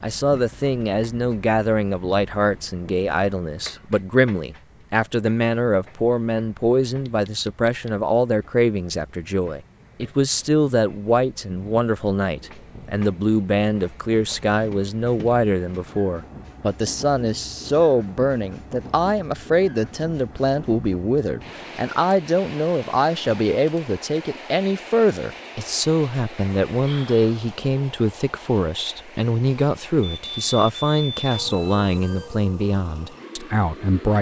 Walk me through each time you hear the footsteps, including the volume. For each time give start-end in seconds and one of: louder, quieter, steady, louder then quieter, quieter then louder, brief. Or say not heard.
not heard.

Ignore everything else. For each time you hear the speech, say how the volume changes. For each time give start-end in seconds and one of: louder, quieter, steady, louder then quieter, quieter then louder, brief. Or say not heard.
0.0-34.1 steady.